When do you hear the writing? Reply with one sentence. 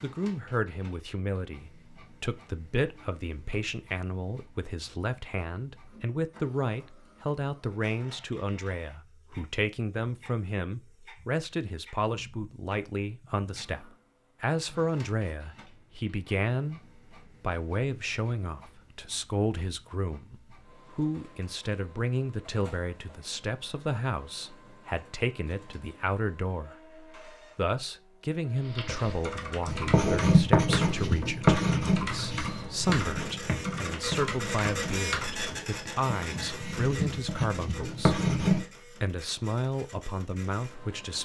The writing can be heard from 29.6 to 38.6 s.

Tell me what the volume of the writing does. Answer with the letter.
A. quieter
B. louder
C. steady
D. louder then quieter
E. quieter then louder
E.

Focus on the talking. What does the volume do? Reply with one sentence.
The loudness of the talking stays about the same.